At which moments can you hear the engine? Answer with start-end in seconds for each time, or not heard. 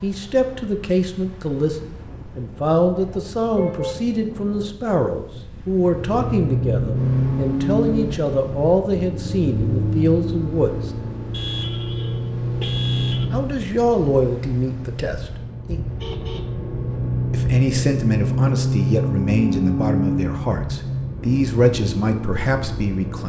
5.9-23.2.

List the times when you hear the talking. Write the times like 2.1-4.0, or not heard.
0.0-10.9, 13.3-15.8, 17.3-23.2.